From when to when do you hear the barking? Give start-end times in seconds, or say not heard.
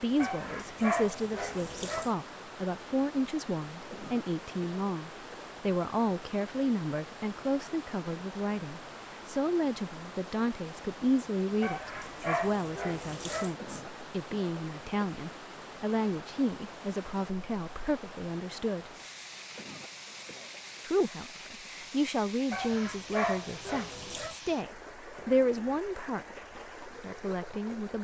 0.1-2.1, 11.6-13.6, 22.5-24.4.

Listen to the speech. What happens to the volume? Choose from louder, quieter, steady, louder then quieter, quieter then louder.
steady.